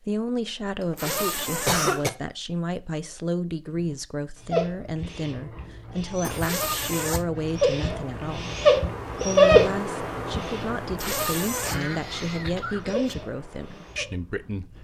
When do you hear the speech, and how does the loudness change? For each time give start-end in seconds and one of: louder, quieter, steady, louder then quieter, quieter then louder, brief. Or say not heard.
0.0-14.7 steady.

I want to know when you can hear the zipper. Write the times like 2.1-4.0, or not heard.
0.9-1.9, 6.4-7.2, 10.9-11.8.